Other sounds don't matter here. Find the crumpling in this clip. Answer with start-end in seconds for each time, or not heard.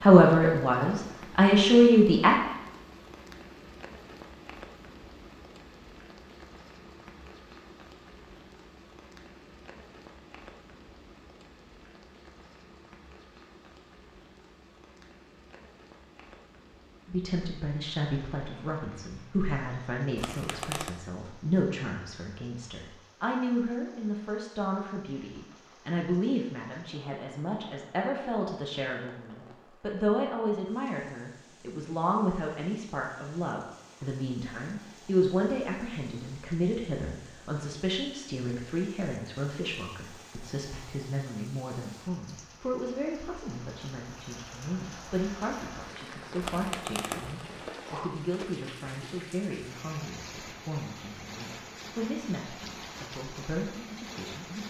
20.1-20.9, 46.4-47.5.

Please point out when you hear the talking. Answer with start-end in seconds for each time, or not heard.
0.0-2.4, 17.1-54.6.